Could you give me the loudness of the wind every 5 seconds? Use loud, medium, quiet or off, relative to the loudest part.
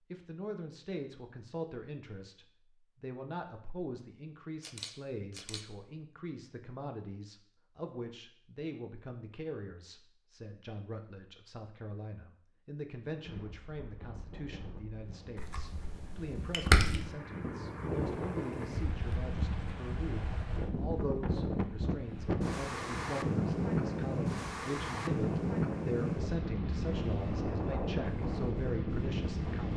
off, off, quiet, medium, loud, loud.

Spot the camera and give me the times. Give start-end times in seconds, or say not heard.
4.6-5.7, 15.3-17.1.